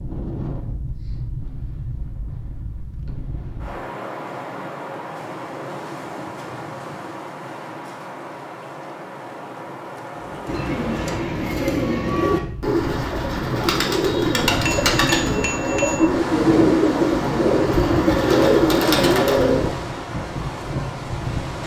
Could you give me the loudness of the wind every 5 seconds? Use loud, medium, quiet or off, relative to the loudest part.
medium, medium, medium, loud, loud.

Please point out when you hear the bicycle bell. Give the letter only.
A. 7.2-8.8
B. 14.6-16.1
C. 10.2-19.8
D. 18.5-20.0
B.